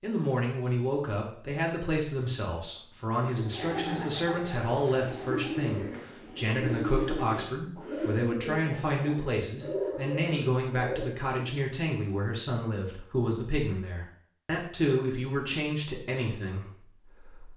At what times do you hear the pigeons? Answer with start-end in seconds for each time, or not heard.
3.1-11.6.